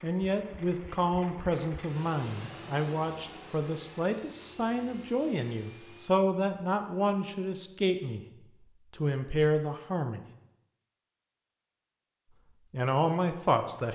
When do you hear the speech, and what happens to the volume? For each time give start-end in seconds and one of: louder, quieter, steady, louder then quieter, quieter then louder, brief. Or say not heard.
0.0-8.2 steady
8.9-10.2 brief
12.7-13.9 brief.